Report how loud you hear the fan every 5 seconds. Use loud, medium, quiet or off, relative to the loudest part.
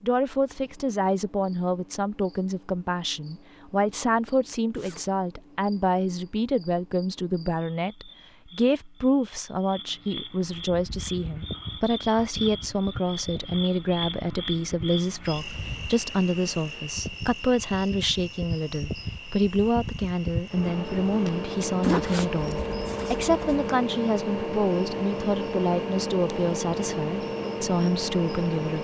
off, off, medium, medium, loud, loud.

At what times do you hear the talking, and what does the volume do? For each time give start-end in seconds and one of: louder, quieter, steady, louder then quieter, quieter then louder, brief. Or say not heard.
0.0-28.7 steady.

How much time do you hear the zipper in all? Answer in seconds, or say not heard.
2 s.